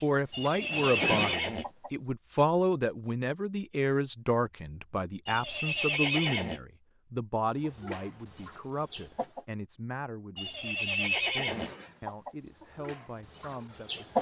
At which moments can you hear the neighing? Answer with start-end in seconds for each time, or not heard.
0.3-1.6, 5.2-6.6, 10.3-11.7.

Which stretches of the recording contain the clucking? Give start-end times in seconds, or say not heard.
0.0-1.9, 7.6-9.4, 11.4-14.1.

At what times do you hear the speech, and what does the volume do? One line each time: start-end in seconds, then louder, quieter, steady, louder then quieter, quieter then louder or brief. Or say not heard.
0.0-14.1 quieter.